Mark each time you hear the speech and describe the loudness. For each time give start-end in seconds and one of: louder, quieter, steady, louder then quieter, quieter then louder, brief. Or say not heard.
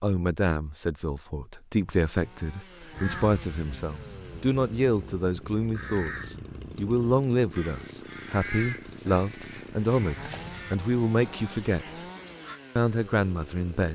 0.0-12.1 steady
12.8-13.9 brief.